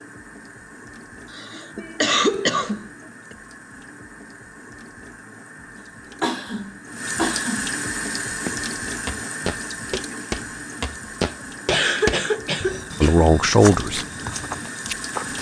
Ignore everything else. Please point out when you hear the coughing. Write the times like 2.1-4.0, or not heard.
1.3-3.4, 6.2-7.7, 11.7-13.3.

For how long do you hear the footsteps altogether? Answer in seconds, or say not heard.
7 s.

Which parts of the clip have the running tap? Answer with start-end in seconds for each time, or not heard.
0.0-15.3.